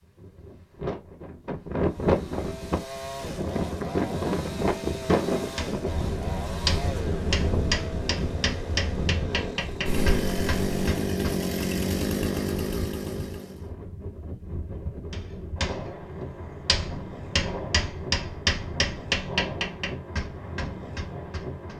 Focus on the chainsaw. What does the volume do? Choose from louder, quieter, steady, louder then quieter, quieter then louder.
louder.